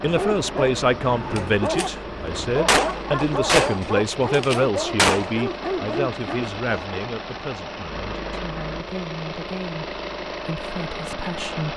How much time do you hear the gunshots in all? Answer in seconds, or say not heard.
3 s.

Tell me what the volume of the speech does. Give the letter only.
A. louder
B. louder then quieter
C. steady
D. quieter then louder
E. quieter
E.